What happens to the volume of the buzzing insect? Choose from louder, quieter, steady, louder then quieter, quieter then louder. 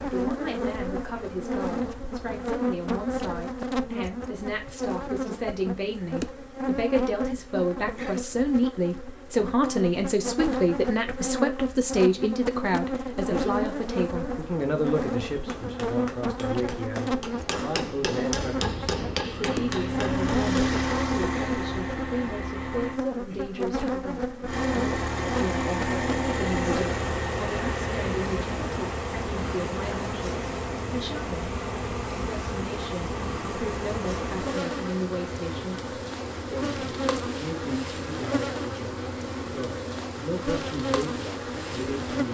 steady.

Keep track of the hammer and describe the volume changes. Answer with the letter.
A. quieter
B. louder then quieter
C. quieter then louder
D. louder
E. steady
D.